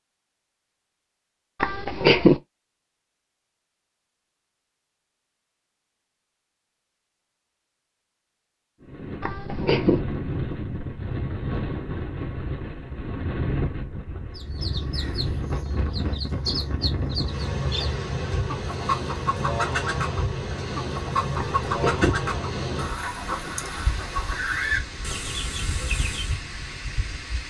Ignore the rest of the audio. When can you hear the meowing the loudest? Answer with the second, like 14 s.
2 s.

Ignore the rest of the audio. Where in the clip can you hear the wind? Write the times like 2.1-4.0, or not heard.
8.8-27.4.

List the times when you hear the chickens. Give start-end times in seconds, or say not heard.
14.3-26.4.